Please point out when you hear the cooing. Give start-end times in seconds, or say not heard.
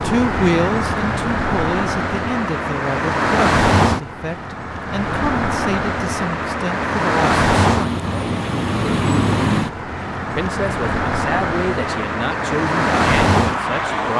not heard.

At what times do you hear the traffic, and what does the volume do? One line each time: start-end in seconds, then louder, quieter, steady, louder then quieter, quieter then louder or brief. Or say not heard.
0.0-14.1 steady.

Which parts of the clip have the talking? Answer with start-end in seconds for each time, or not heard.
0.0-8.0, 10.2-14.1.